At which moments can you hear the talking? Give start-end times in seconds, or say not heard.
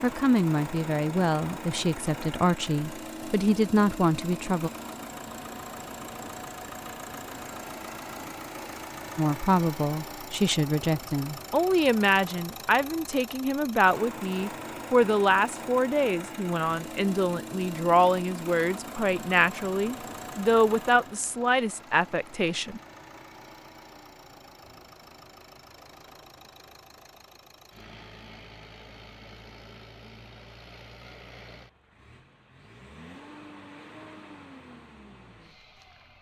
0.0-4.7, 9.2-22.8.